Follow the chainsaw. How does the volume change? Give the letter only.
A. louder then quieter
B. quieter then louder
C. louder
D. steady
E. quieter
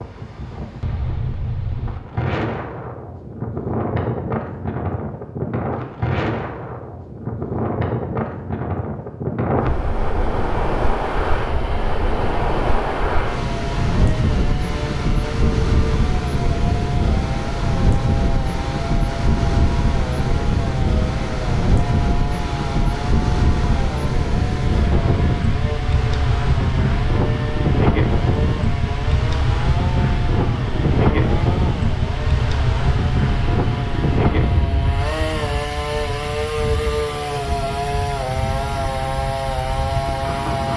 C.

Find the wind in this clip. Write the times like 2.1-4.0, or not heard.
0.0-40.7.